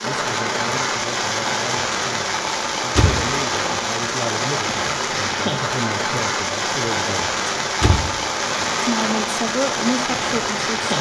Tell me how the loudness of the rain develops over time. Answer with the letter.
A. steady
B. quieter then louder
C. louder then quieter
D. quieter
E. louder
A.